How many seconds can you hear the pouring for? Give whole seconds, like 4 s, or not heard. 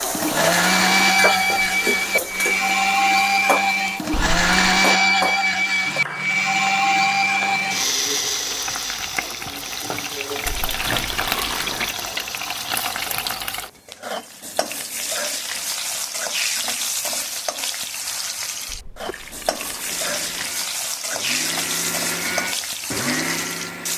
4 s.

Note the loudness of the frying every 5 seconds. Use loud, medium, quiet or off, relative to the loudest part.
loud, medium, loud, loud, loud.